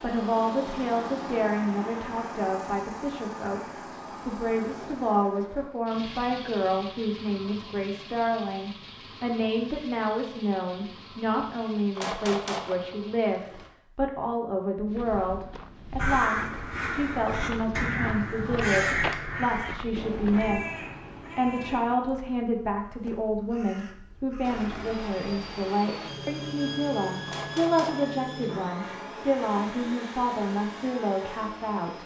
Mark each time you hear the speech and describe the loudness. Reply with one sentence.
The speech can be heard from 0.0 to 32.0 s, at a steady volume.